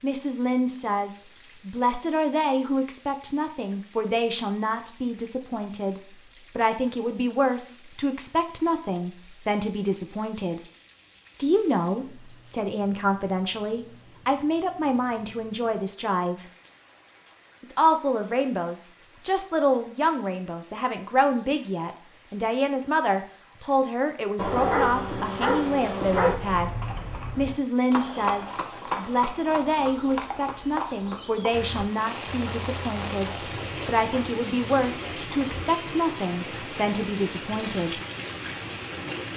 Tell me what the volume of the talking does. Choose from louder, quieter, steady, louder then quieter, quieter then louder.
steady.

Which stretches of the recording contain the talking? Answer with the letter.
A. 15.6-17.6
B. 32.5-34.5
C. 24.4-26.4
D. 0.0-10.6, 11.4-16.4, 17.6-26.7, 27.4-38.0
D.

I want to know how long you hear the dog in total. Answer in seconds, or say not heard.
2 s.